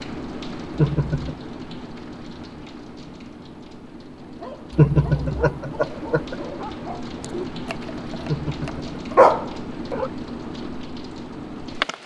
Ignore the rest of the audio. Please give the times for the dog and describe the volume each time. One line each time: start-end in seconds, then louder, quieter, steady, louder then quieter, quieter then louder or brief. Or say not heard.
4.2-10.1 louder.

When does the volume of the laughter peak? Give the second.
5 s.